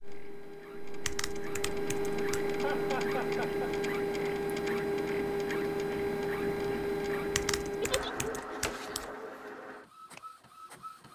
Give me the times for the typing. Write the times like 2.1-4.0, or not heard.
1.0-2.5, 7.3-9.1.